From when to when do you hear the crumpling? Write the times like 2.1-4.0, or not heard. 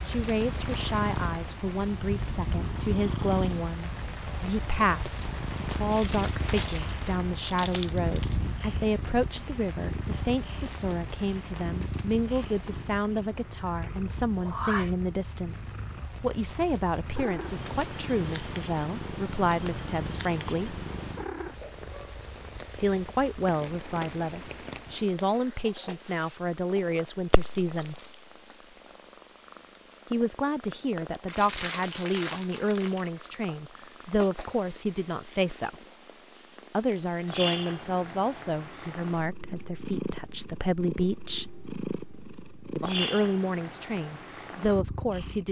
5.9-8.5, 27.6-28.3, 31.2-33.1.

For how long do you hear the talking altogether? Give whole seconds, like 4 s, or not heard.
39 s.